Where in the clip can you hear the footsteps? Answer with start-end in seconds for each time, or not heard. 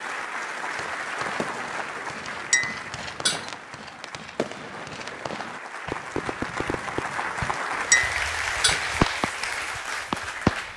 not heard.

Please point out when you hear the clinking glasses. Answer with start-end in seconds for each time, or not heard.
2.5-3.5, 7.8-8.8.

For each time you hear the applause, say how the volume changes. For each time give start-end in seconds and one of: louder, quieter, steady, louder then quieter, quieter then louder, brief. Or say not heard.
0.0-10.7 quieter then louder.